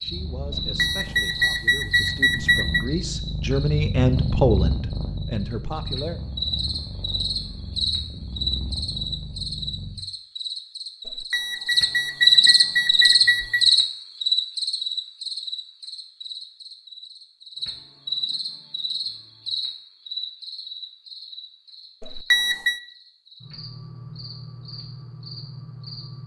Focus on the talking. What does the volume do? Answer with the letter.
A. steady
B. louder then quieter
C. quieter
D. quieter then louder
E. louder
B.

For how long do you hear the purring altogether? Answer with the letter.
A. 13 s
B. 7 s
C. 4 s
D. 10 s
D.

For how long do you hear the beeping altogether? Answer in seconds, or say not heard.
6 s.